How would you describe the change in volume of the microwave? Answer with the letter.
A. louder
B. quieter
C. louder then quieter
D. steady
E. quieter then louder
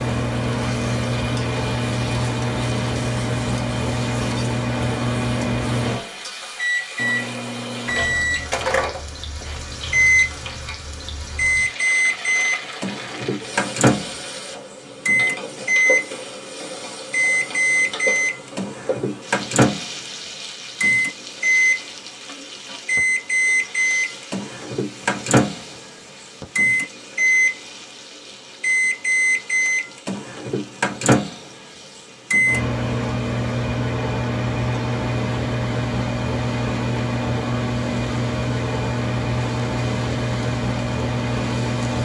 D.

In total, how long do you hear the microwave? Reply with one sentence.
You can hear the microwave for 42 seconds altogether.